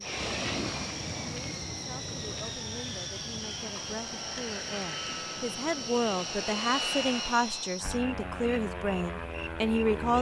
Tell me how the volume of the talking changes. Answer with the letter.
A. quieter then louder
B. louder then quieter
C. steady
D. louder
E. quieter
D.